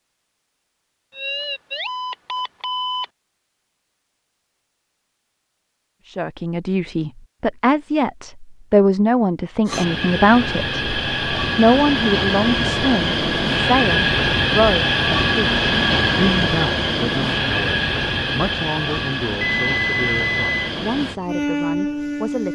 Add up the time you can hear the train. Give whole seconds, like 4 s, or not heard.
13 s.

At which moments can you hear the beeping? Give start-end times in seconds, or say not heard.
1.1-3.0, 19.4-20.7.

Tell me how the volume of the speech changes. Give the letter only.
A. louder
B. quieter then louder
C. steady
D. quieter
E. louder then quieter
D.